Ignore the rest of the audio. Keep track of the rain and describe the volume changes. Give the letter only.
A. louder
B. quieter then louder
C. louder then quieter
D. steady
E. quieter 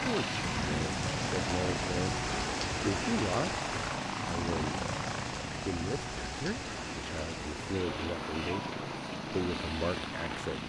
E.